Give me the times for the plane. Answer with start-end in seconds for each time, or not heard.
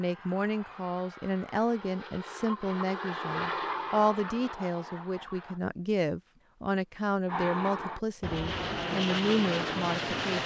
0.0-5.6, 7.2-10.4.